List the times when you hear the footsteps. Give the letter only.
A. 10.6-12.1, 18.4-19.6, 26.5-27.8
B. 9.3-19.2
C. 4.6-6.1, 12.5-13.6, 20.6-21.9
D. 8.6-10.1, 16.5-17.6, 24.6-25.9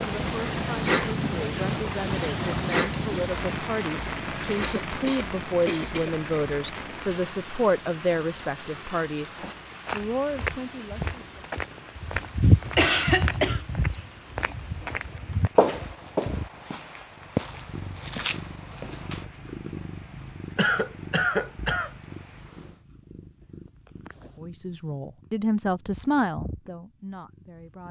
B.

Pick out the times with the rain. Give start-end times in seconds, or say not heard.
0.0-22.9.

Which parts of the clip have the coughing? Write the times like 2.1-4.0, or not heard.
4.6-6.1, 12.5-13.6, 20.6-21.9.